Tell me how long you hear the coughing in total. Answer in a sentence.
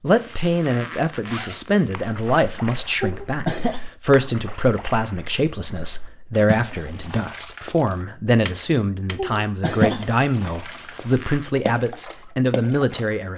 The coughing can be heard for 2 seconds in total.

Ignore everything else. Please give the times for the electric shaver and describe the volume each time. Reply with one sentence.
You can't hear the electric shaver here.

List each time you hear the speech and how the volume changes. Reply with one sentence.
The speech can be heard from 0.0 to 13.3 s, at a steady volume.